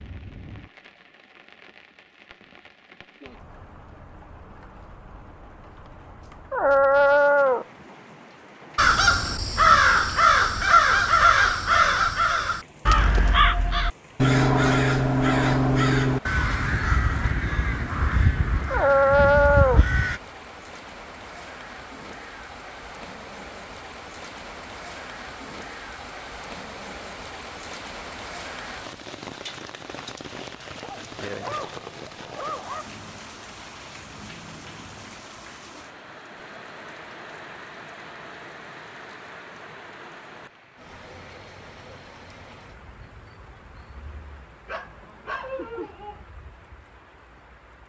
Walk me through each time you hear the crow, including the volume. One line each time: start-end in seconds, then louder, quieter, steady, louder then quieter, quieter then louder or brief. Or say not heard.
8.8-20.2 quieter.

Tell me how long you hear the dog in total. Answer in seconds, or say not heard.
6 s.